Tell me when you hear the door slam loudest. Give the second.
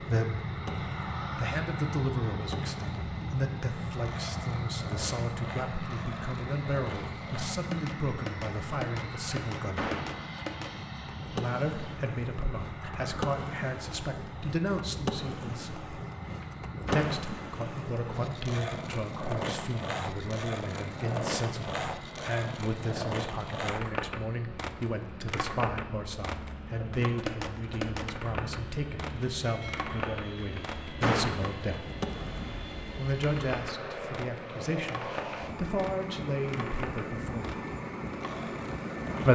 31 s.